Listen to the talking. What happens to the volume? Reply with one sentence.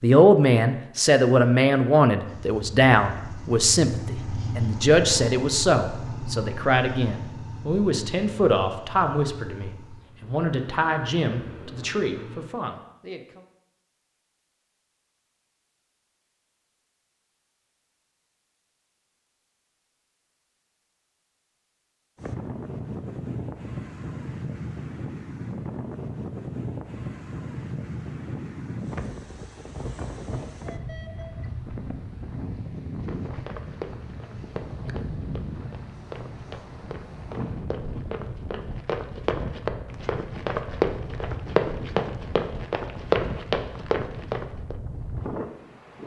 The loudness of the talking goes down.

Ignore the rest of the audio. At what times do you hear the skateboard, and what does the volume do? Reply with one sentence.
You can't hear the skateboard here.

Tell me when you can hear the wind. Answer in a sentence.
You can hear the wind from 22.1 to 46.0 s.